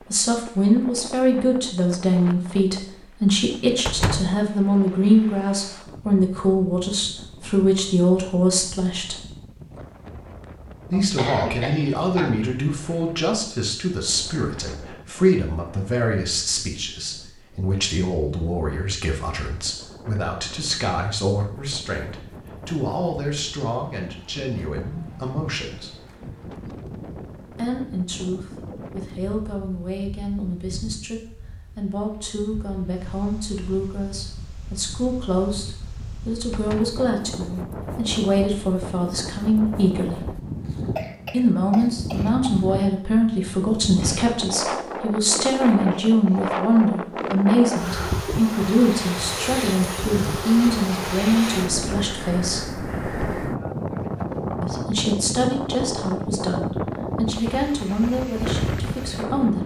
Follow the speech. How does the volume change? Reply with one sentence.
The volume of the speech goes down, then up.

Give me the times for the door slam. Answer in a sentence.
The door slam can be heard from 3.9 to 4.4 s, from 36.5 to 37.0 s and from 44.0 to 44.5 s.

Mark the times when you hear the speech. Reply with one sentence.
You can hear the speech from 0.1 to 9.2 s, from 10.9 to 25.9 s, from 27.5 to 40.2 s, from 41.3 to 52.7 s and from 54.6 to 59.6 s.